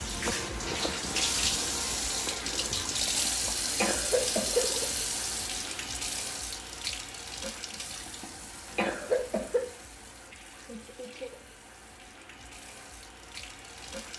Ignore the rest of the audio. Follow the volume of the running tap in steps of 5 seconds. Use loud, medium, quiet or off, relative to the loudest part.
loud, medium, quiet.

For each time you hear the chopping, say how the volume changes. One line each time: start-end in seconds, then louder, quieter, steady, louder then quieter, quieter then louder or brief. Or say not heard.
not heard.